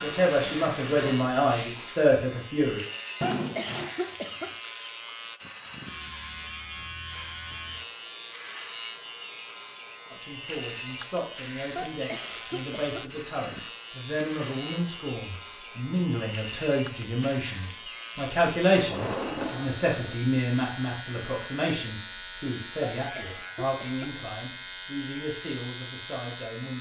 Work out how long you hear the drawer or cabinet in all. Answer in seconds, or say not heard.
2 s.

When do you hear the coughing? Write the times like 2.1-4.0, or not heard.
3.2-4.5, 11.8-13.1, 22.9-24.1.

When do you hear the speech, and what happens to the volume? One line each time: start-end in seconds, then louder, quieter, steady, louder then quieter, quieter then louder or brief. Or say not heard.
0.0-2.8 brief
10.1-26.7 louder then quieter.